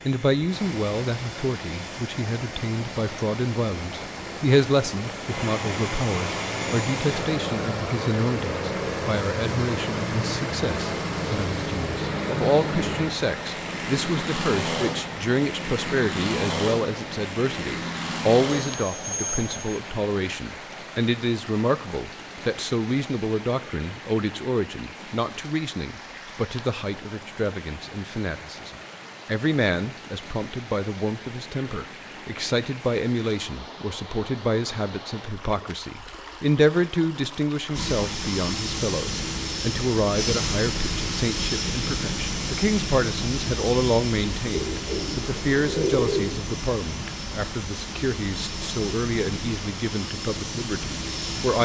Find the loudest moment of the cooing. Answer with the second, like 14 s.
46 s.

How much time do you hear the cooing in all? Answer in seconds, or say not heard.
2 s.